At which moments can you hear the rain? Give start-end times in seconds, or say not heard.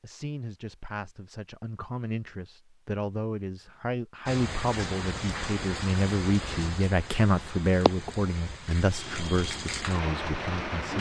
4.2-10.9.